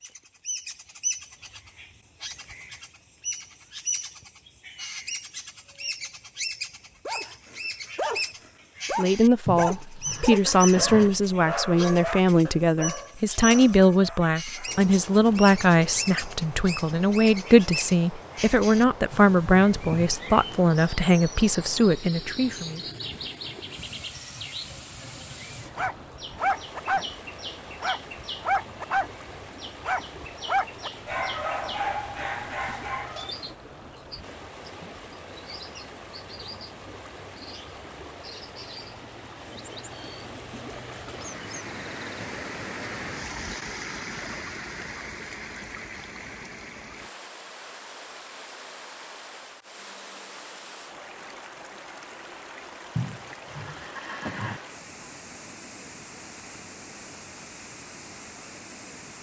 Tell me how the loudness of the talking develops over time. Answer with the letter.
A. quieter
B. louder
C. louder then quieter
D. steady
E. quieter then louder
D.